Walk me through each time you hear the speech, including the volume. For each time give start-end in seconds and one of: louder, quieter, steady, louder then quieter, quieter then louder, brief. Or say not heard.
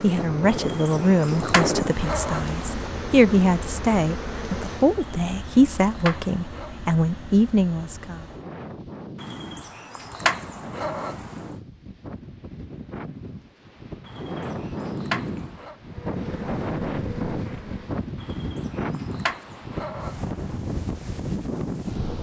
0.0-8.2 steady.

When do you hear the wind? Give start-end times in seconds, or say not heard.
0.0-22.1.